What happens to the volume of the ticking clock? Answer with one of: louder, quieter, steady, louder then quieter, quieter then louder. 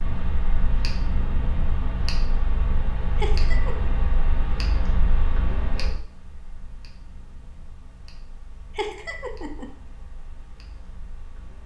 quieter.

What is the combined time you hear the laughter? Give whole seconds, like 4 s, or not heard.
2 s.